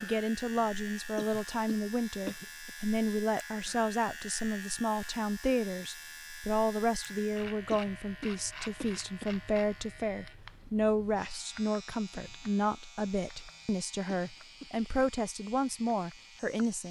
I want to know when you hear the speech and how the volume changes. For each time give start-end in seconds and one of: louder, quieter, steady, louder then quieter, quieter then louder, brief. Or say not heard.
0.0-16.8 steady.